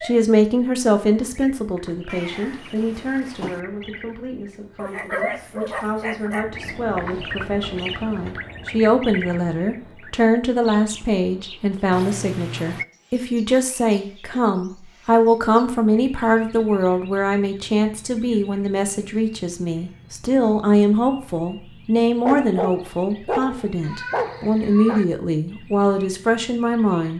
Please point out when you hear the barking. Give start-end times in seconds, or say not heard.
4.8-6.5, 22.2-25.0.